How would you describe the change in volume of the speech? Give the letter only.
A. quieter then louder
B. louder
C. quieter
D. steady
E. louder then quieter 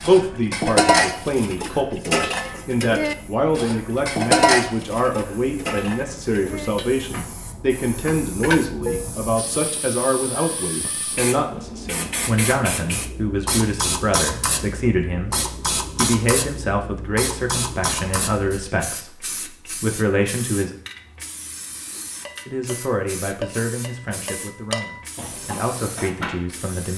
C.